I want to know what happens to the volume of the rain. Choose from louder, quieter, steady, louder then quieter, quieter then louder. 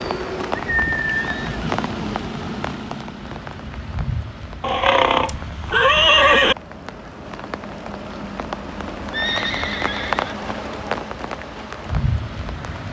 quieter then louder.